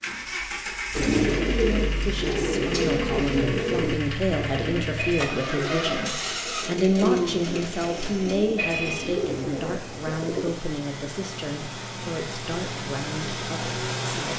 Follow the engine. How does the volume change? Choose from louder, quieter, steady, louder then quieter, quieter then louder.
quieter then louder.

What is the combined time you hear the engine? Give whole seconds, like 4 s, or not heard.
14 s.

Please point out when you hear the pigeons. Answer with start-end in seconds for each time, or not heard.
0.9-10.5.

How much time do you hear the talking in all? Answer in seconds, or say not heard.
12 s.